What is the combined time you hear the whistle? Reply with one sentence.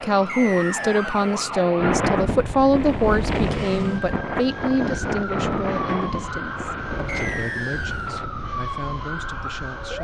The whistle can be heard for 2 seconds in total.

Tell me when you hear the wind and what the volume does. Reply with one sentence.
You can hear the wind from 1.8 to 9.9 s, getting quieter.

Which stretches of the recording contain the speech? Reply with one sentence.
You can hear the speech from 0.0 to 9.9 s.